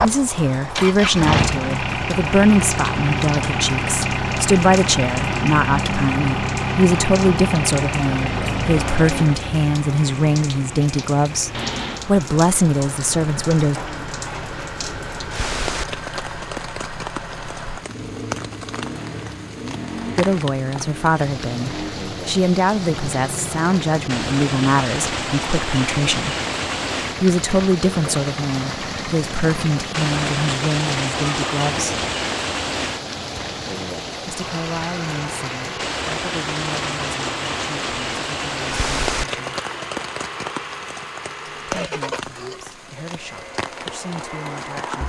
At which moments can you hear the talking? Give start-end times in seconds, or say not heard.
0.0-13.8, 20.1-26.3, 27.2-31.9, 34.2-39.6, 41.6-45.0.